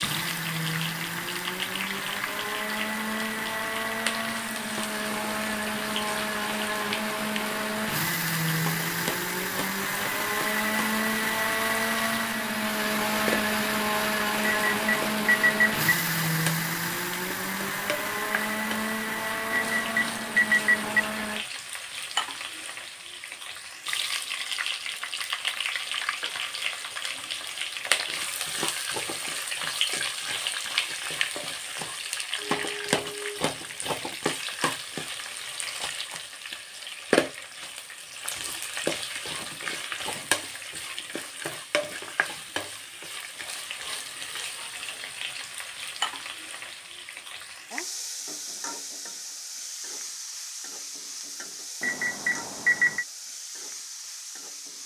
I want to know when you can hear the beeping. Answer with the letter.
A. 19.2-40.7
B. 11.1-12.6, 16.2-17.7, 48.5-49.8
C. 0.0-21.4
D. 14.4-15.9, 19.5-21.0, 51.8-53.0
D.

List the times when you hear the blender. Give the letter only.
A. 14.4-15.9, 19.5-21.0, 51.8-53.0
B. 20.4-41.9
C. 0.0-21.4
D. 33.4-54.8
C.